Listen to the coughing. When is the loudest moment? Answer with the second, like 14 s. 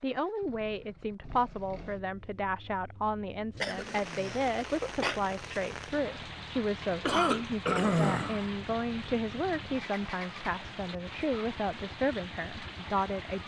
8 s.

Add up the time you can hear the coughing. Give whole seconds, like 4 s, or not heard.
3 s.